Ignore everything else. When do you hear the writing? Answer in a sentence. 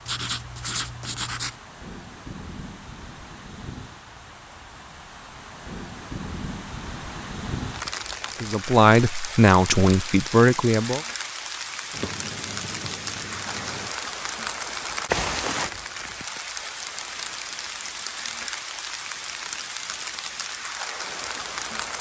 The writing can be heard from 0.1 to 1.6 s and from 11.9 to 13.9 s.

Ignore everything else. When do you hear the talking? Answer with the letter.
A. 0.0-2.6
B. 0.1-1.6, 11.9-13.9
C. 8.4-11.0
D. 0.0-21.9
C.